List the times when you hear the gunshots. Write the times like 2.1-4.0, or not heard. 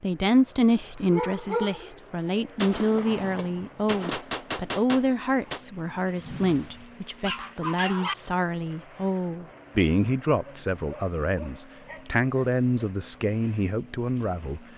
2.5-5.7.